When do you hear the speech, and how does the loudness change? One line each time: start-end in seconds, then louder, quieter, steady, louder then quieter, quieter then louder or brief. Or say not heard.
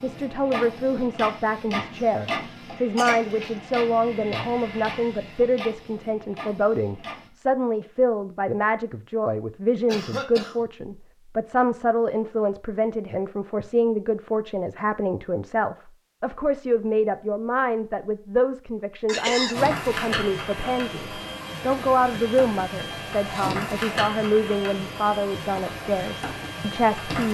0.0-27.2 steady.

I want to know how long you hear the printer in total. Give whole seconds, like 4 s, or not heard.
15 s.